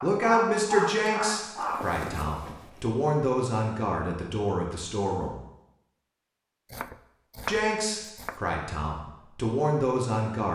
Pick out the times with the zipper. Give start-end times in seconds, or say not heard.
1.6-2.9.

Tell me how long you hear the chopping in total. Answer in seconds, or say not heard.
2 s.